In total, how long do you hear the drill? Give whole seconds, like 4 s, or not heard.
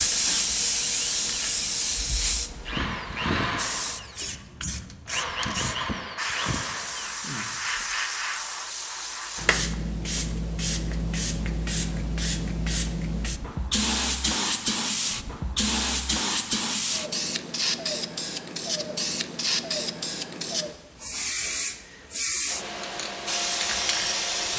8 s.